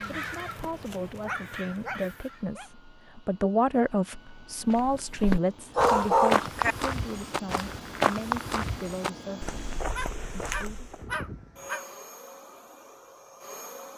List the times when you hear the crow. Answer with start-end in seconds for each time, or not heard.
0.0-2.5.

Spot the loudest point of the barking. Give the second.
6 s.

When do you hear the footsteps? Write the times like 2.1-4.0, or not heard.
4.7-11.0.